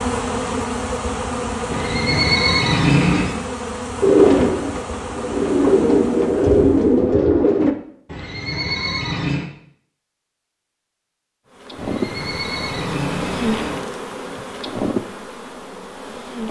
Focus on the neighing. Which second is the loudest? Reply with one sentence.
The volume of the neighing peaks at 3 seconds.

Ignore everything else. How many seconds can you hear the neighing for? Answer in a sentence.
The neighing can be heard for 5 seconds in total.